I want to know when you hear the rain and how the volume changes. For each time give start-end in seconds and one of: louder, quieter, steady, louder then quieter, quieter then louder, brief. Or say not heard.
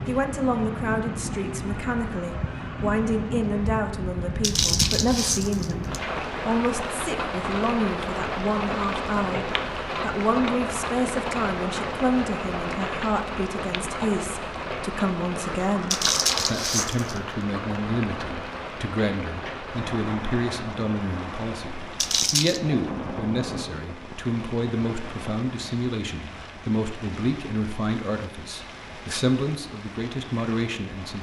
0.0-31.1 quieter.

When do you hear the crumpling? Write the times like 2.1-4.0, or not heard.
4.4-6.0, 15.9-17.2, 21.9-22.6.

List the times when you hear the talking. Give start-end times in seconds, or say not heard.
0.1-31.1.